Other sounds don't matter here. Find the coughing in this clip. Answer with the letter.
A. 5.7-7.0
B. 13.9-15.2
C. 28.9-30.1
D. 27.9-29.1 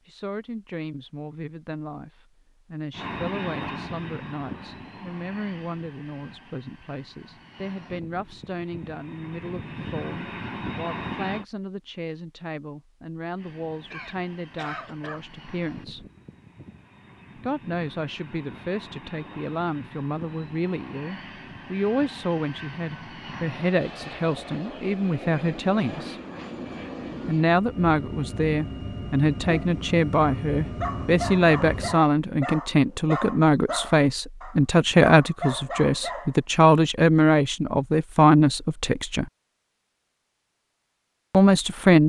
B.